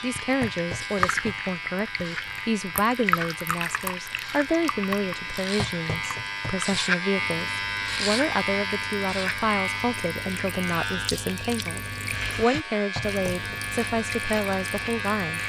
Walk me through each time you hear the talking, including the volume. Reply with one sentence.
The talking can be heard from 0.0 to 15.4 s, at a steady volume.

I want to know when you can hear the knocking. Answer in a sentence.
The knocking can be heard from 0.4 to 1.4 s, from 5.5 to 6.8 s and from 12.9 to 13.7 s.